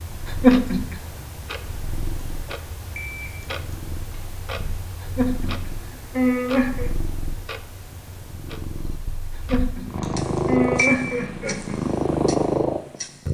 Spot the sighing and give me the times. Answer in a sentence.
You can hear the sighing from 0.4 to 1.0 s, from 5.2 to 6.9 s and from 9.5 to 11.8 s.